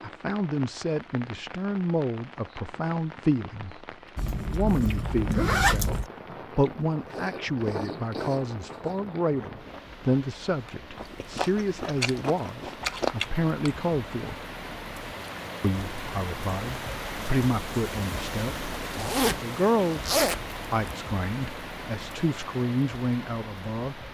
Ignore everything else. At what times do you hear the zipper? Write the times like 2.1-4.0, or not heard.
4.2-6.1, 18.9-20.9.